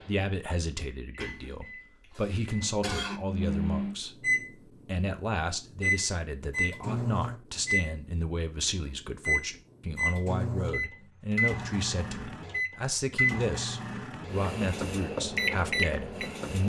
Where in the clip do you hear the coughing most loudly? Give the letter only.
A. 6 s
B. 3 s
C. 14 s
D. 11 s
B.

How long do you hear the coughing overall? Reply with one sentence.
The coughing can be heard for 2 seconds in total.